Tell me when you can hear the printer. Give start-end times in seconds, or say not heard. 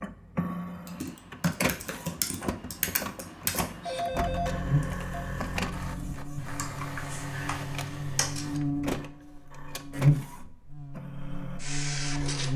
0.0-12.5.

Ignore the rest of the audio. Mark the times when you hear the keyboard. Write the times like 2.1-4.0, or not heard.
0.8-8.6.